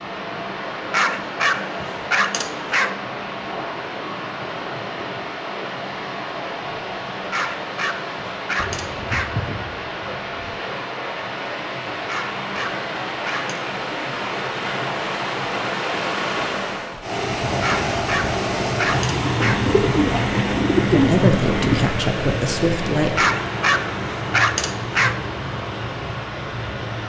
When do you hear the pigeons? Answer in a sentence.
The pigeons can be heard from 8.6 to 10.6 s and from 19.2 to 21.9 s.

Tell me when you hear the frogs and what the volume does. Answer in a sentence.
You can't hear the frogs here.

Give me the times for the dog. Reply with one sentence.
The dog can be heard from 0.9 to 2.9 s, from 7.3 to 9.3 s, from 12.1 to 13.6 s, from 17.6 to 19.6 s and from 23.1 to 25.1 s.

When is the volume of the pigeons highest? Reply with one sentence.
The loudest moment of the pigeons is at 21 seconds.